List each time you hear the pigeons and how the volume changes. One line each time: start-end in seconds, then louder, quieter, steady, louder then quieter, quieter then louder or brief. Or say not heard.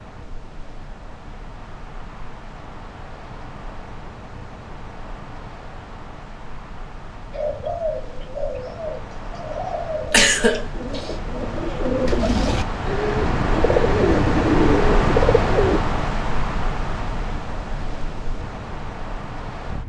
7.3-15.8 louder.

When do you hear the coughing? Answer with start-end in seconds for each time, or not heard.
10.1-11.1.